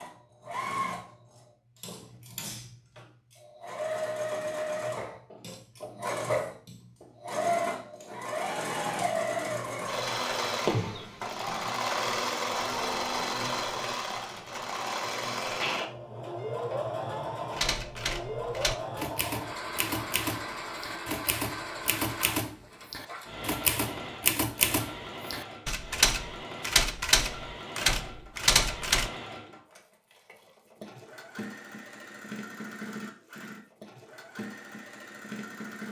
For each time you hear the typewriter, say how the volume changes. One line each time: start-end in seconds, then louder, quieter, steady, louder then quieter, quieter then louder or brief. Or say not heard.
17.5-29.1 louder.